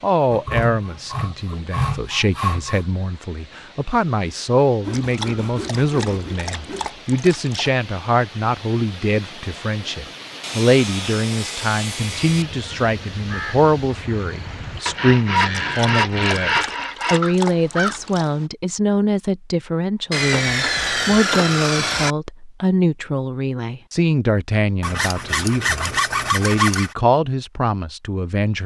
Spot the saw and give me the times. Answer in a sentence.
You can hear the saw from 0.3 to 2.8 s, from 4.8 to 6.9 s, from 10.4 to 12.4 s, from 14.8 to 17.2 s, from 20.1 to 22.1 s and from 24.8 to 26.9 s.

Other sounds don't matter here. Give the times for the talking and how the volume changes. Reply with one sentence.
You can hear the talking from 0.0 to 28.6 s, at a steady volume.